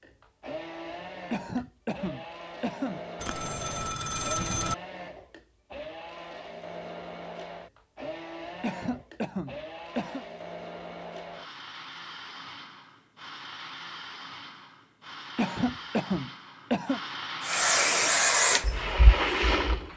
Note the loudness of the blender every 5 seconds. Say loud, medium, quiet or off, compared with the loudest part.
medium, medium, medium, loud.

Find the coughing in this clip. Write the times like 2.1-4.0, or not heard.
1.3-3.0, 8.6-10.2, 15.3-17.0.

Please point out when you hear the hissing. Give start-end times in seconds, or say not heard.
17.4-19.9.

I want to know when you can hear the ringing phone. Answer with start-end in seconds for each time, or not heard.
3.2-4.8.